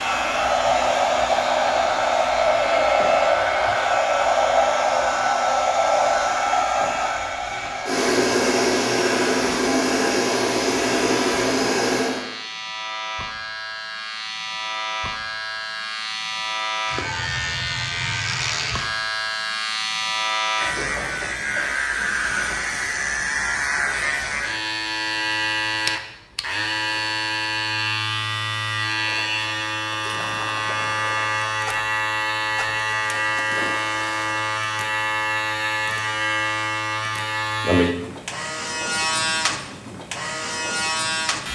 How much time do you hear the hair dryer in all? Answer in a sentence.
You can hear the hair dryer for 12 seconds altogether.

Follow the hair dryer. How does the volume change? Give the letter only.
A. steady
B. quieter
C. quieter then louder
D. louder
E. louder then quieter
A.